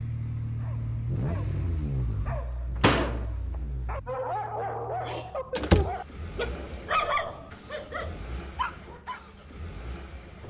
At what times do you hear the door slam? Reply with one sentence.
The door slam can be heard from 2.8 to 3.2 s and from 5.5 to 6.0 s.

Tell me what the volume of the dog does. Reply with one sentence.
The volume of the dog goes up, then down.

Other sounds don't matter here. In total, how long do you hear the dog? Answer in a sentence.
You can hear the dog for 9 seconds altogether.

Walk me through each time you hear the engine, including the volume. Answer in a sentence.
You can hear the engine from 0.0 to 10.4 s, getting quieter.